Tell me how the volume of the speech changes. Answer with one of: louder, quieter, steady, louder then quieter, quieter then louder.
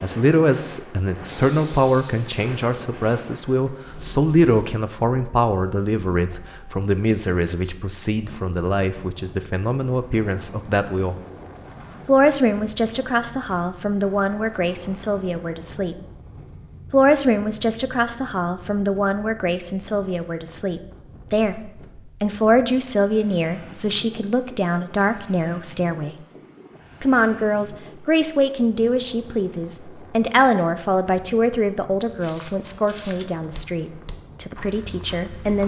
steady.